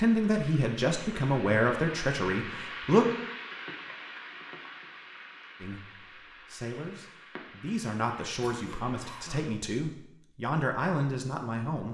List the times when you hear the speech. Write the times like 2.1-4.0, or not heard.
0.0-3.0, 5.6-11.9.